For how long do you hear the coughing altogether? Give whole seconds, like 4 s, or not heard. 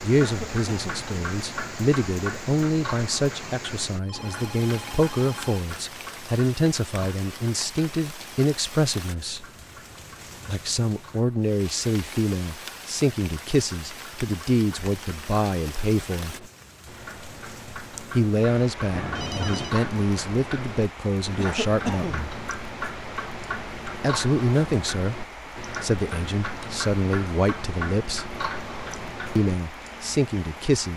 2 s.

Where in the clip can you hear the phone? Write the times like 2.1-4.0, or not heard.
3.9-5.6, 18.9-19.8.